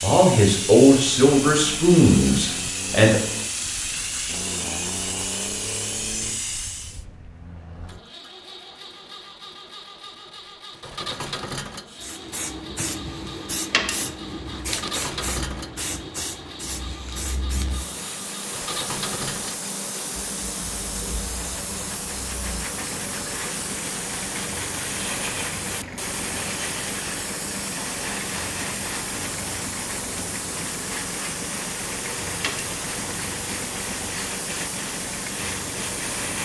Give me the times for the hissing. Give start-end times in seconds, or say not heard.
0.0-7.0, 11.9-36.4.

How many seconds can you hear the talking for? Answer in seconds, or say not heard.
3 s.